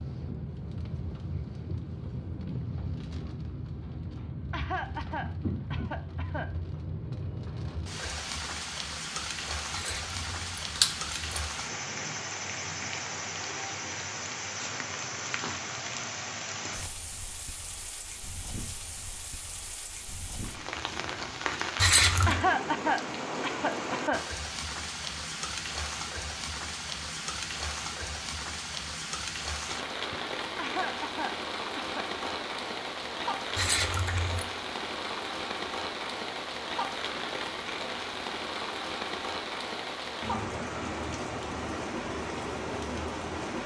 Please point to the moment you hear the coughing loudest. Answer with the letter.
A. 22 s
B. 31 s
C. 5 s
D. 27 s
A.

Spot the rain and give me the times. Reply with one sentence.
The rain can be heard from 0.0 to 43.6 s.